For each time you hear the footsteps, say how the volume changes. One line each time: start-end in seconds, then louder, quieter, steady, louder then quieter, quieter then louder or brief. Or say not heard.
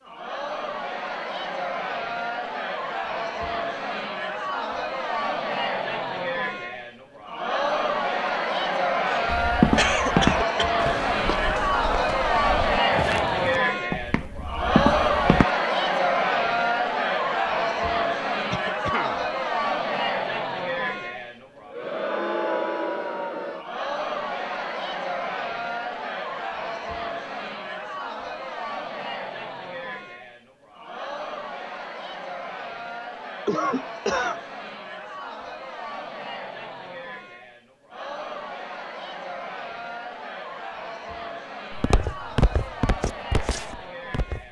9.3-15.4 quieter then louder
41.7-44.4 brief.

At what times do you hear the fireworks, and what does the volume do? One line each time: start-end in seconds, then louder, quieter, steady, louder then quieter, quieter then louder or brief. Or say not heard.
not heard.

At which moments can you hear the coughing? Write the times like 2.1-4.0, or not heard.
9.1-10.8, 18.4-19.2, 33.5-34.4.